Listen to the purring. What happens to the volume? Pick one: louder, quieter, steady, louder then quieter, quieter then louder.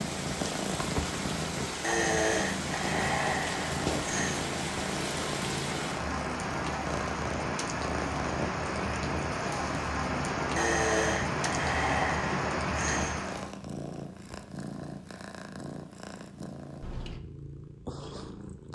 quieter.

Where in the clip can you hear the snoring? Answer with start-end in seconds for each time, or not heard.
1.8-4.4, 10.6-13.2.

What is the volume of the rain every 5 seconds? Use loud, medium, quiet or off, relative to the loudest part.
loud, loud, loud, off.